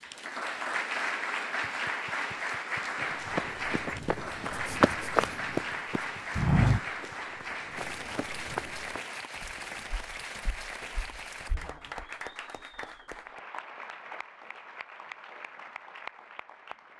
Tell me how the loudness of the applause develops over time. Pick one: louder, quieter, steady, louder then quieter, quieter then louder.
quieter.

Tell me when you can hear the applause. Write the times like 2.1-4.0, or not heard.
0.0-16.9.